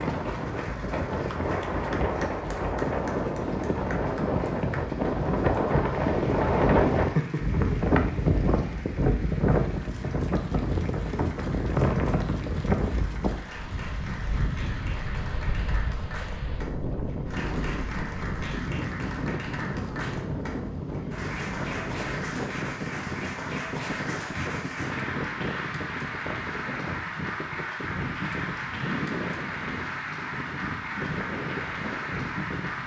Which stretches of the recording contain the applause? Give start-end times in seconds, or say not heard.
0.0-32.8.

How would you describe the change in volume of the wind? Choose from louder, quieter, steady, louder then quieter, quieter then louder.
quieter.